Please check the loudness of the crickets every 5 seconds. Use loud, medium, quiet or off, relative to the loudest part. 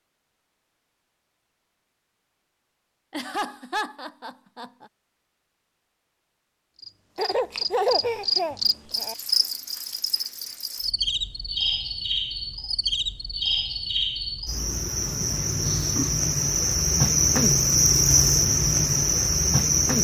off, medium, medium, loud.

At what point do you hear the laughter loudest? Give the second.
8 s.